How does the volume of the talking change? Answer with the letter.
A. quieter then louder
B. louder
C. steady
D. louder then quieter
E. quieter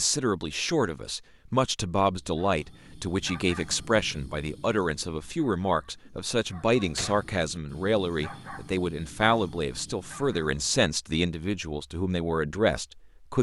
C.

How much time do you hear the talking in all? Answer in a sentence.
You can hear the talking for 13 seconds altogether.